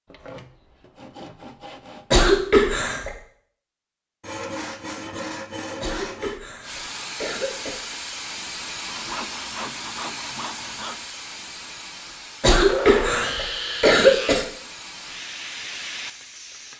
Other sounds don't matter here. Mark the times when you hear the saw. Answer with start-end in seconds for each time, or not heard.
0.1-2.1, 4.2-6.4, 8.8-11.1, 12.7-14.4.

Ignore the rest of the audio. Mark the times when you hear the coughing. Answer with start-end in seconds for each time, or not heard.
2.1-3.1, 5.8-7.8, 12.4-14.4.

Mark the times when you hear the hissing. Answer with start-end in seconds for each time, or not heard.
6.6-16.7.